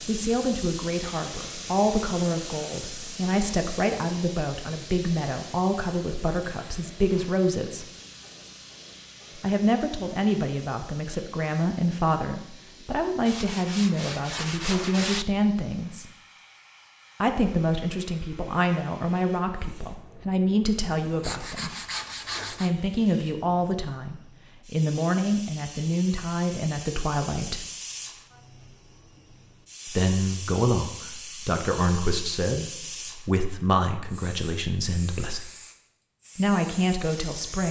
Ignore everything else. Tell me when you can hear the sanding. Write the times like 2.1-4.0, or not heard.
13.2-15.2, 21.2-22.7.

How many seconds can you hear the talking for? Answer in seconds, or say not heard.
31 s.